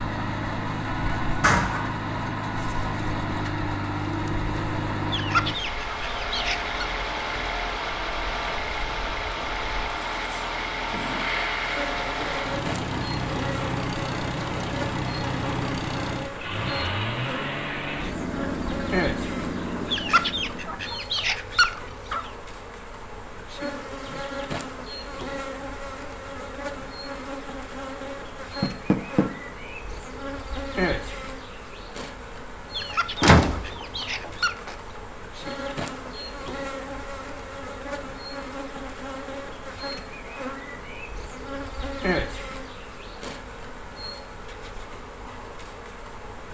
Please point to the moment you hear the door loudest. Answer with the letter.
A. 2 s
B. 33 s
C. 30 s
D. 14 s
B.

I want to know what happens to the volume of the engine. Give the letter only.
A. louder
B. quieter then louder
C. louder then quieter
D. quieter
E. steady
E.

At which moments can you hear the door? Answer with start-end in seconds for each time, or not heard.
1.4-2.0, 28.6-29.2, 32.9-34.8.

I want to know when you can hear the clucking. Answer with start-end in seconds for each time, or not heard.
5.1-6.7, 19.9-22.3, 32.7-35.0.